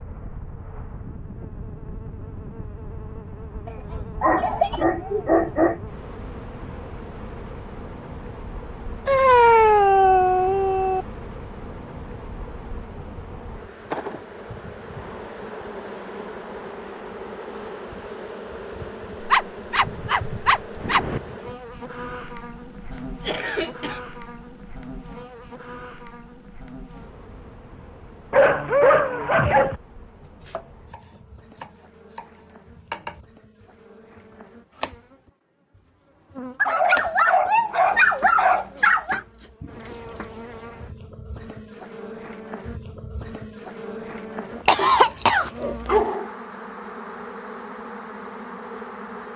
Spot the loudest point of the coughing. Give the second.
45 s.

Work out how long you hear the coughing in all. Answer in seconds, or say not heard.
4 s.